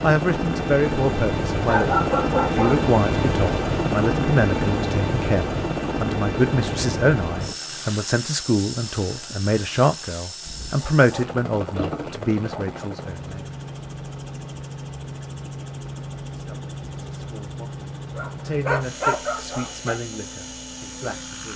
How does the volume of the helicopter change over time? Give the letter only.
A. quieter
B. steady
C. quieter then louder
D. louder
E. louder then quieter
A.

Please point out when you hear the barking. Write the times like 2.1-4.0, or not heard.
1.6-2.9, 10.4-12.8, 18.1-20.0.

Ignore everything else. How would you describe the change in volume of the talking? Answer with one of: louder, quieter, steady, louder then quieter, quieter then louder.
quieter.